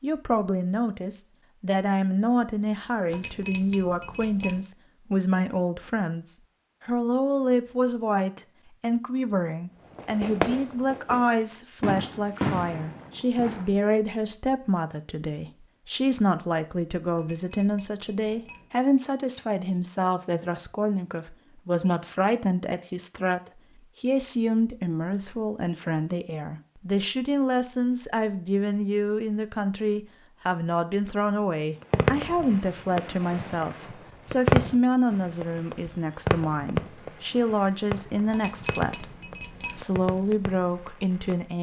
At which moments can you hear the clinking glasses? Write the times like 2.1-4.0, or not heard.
3.1-4.6, 17.1-18.7, 38.3-39.9.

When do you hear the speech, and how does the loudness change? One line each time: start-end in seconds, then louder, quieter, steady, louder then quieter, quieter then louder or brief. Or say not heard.
0.0-39.0 steady
39.6-41.5 brief.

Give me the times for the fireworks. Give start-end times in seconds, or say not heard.
9.9-13.7, 31.8-41.5.